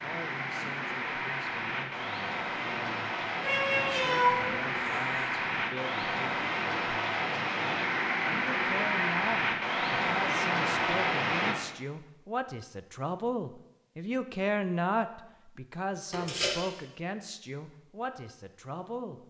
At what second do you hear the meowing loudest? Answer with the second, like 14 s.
4 s.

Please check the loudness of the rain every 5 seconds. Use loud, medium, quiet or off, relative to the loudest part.
medium, loud, loud, off.